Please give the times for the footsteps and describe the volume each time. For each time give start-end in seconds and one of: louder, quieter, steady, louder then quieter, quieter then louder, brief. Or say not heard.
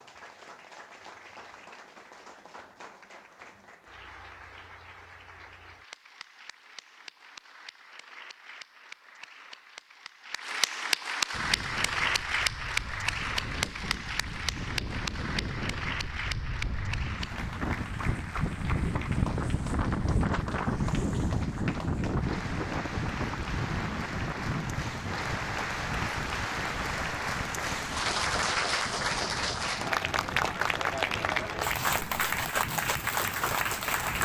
not heard.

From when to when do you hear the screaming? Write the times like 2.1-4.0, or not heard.
not heard.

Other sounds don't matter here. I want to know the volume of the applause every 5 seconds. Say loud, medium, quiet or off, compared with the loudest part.
quiet, quiet, loud, medium, medium, loud, loud.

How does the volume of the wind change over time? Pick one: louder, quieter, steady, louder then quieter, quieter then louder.
louder then quieter.